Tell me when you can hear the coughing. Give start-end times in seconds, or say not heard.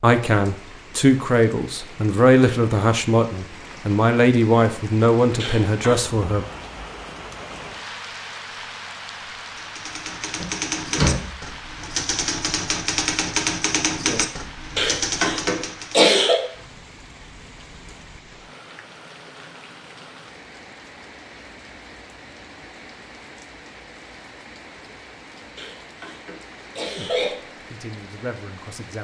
5.3-6.0, 14.8-16.4, 25.6-27.4.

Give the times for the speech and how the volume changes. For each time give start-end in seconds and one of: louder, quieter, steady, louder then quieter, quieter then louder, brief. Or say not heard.
0.0-6.5 steady
26.9-28.9 brief.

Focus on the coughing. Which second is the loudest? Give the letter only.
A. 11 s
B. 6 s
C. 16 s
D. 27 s
C.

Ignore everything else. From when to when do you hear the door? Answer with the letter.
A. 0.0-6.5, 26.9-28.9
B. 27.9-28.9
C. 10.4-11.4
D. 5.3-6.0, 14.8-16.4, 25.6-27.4
C.